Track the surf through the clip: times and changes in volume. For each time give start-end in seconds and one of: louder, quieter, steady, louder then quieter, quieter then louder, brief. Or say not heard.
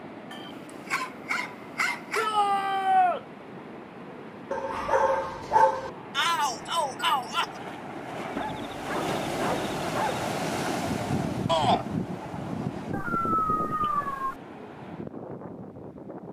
0.0-16.2 louder then quieter.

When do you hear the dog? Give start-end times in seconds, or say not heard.
0.3-2.3, 4.5-5.9, 8.3-10.3, 12.9-14.3.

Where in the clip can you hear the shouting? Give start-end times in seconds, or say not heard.
2.1-3.2, 6.2-7.5, 11.4-11.8.